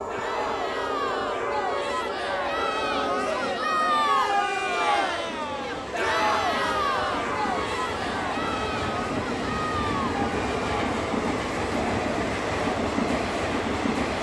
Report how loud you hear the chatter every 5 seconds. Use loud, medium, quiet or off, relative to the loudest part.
loud, loud, medium.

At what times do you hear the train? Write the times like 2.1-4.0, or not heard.
0.0-14.1.